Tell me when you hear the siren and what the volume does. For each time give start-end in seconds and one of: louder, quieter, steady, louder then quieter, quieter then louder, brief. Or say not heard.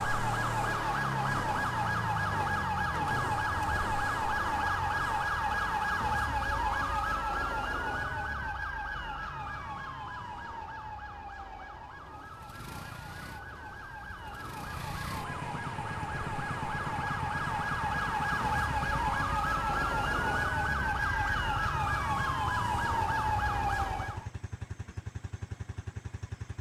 0.0-24.3 quieter then louder.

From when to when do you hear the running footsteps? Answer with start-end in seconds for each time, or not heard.
not heard.